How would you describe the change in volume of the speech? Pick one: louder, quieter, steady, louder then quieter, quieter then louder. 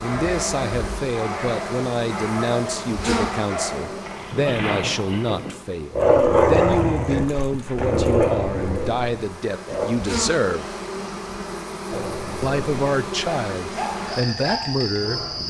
steady.